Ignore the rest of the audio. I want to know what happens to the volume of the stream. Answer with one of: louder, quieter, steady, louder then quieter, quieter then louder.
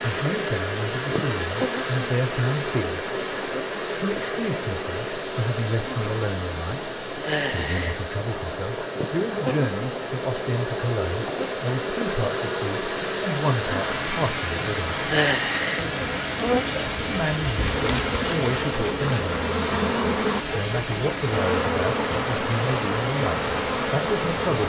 steady.